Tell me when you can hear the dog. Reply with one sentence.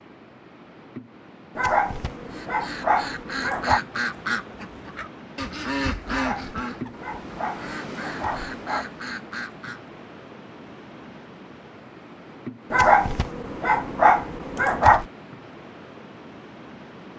You can hear the dog from 1.6 to 3.8 s, from 6.0 to 8.8 s and from 12.7 to 15.1 s.